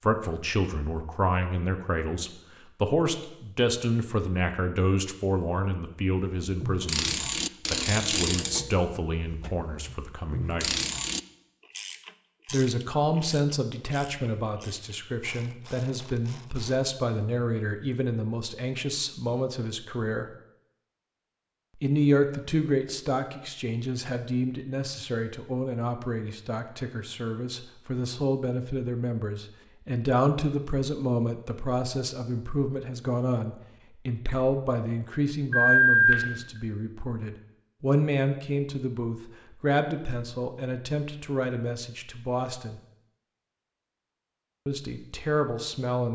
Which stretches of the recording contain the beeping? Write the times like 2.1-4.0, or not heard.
35.5-36.1.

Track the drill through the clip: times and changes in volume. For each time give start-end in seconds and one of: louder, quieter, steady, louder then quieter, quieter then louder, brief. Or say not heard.
not heard.